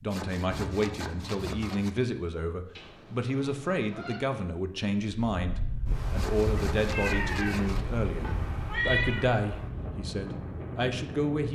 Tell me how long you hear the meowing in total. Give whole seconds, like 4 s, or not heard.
4 s.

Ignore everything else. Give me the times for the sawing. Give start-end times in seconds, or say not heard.
0.1-1.9, 6.2-7.8.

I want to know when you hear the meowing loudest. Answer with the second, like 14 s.
9 s.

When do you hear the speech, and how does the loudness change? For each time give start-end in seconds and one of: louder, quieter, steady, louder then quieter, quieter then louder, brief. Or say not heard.
0.0-11.4 steady.